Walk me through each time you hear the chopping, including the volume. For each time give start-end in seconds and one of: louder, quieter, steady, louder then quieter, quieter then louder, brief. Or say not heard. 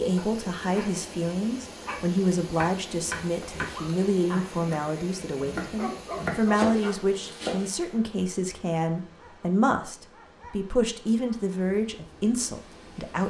2.5-7.7 quieter then louder.